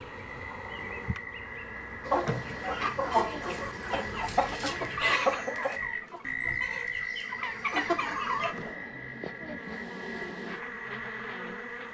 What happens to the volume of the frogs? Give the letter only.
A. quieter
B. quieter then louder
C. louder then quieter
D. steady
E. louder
C.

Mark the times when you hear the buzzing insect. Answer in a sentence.
You can hear the buzzing insect from 0.0 to 11.8 s.